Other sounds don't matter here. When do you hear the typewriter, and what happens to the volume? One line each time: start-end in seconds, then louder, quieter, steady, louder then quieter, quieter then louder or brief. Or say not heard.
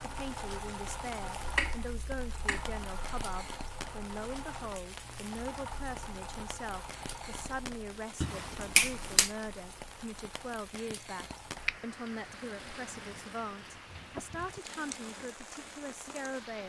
not heard.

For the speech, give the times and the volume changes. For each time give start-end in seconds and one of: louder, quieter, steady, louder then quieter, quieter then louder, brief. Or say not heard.
0.0-16.6 steady.